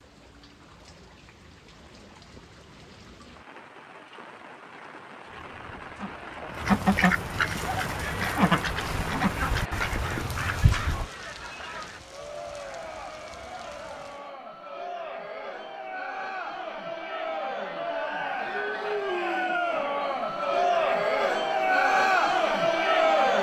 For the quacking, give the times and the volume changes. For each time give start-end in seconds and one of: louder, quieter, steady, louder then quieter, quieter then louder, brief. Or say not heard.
5.2-11.1 louder then quieter.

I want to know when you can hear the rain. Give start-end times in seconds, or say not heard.
0.0-14.3.